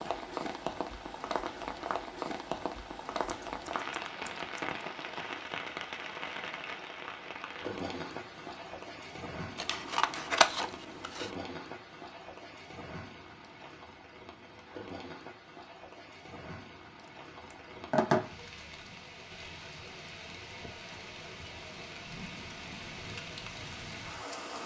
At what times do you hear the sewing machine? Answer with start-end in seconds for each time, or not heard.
not heard.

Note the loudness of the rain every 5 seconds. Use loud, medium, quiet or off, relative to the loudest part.
loud, loud, medium, medium, medium.